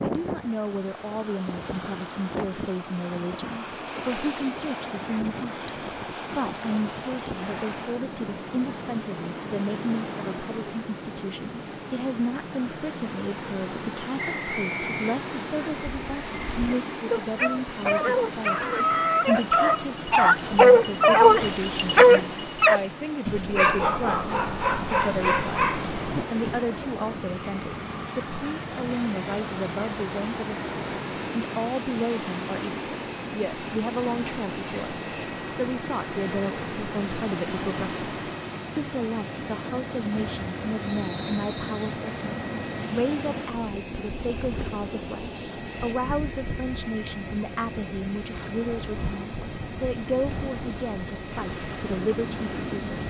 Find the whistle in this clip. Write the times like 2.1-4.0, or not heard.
14.2-15.2, 40.9-41.9.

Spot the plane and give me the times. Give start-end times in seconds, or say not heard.
24.4-53.0.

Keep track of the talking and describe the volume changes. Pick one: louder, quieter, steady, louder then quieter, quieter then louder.
steady.